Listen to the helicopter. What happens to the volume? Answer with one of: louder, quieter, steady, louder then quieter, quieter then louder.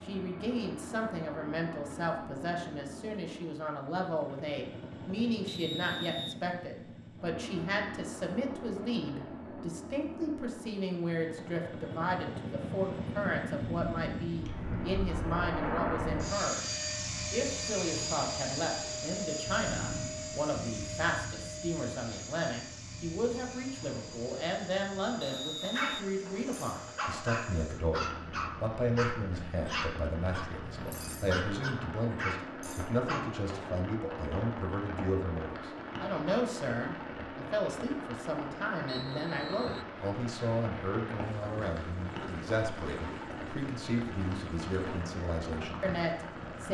louder then quieter.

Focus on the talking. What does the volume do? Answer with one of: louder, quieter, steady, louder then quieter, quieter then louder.
steady.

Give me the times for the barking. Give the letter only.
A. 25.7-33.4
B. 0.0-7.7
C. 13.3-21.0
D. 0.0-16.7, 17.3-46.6
A.